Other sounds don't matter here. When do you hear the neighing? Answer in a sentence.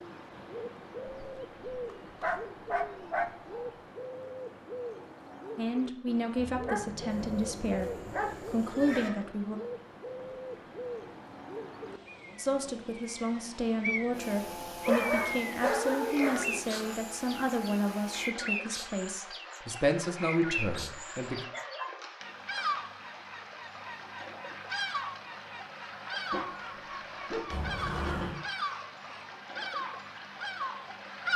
The neighing can be heard from 7.0 to 9.1 s and from 27.5 to 28.4 s.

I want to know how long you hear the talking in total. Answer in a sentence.
The talking can be heard for 13 seconds in total.